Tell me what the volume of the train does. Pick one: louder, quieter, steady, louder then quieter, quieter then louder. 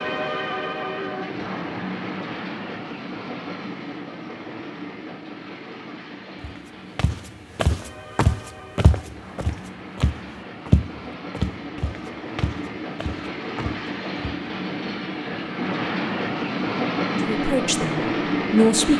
quieter then louder.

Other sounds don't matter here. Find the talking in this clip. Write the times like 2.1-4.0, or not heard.
17.2-18.9.